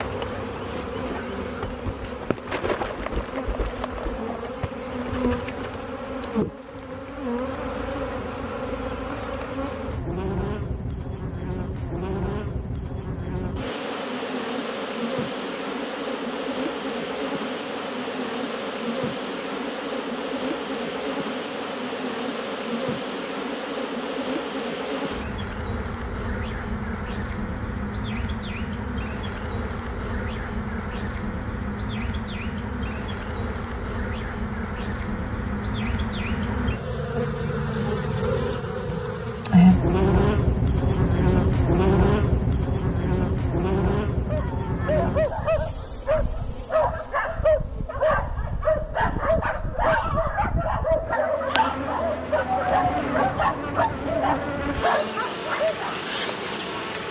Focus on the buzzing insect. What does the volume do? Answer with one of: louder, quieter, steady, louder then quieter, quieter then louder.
louder then quieter.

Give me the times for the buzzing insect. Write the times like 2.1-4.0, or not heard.
0.0-57.0.